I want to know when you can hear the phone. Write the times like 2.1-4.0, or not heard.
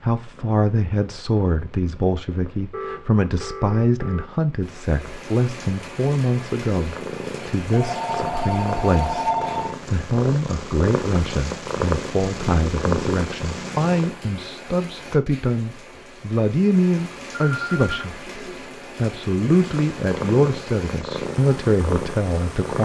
2.7-4.3, 7.7-9.8, 17.4-18.1.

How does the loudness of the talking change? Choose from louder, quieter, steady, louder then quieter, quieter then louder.
steady.